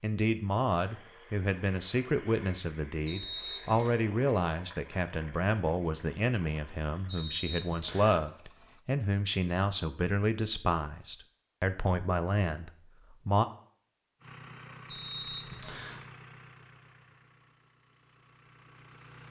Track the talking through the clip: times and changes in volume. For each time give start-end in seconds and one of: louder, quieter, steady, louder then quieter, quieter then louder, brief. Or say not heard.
0.0-13.4 steady.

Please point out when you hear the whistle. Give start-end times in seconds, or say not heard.
3.0-4.0, 7.0-8.2, 14.8-16.0.